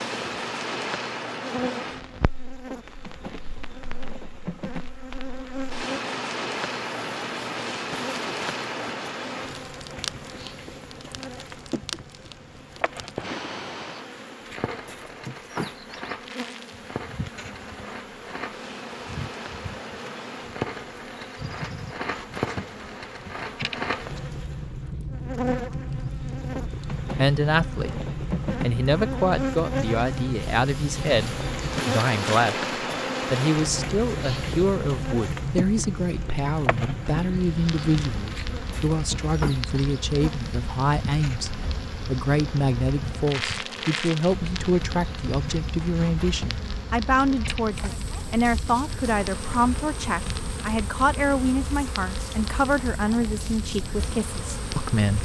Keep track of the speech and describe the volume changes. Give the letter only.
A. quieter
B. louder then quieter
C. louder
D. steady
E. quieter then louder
D.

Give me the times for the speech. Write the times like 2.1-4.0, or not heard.
27.1-55.2.